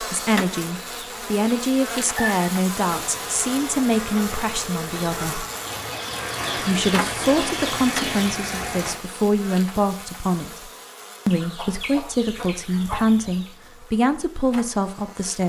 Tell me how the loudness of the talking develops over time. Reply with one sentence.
The loudness of the talking stays about the same.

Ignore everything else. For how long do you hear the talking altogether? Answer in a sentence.
You can hear the talking for 14 seconds altogether.